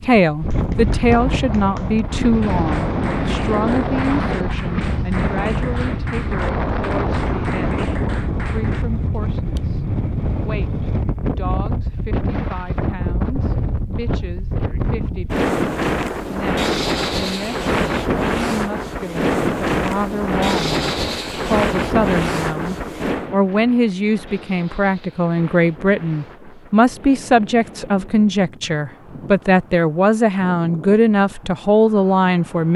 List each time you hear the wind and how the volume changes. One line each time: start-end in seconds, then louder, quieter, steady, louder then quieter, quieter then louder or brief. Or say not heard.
0.0-32.7 quieter.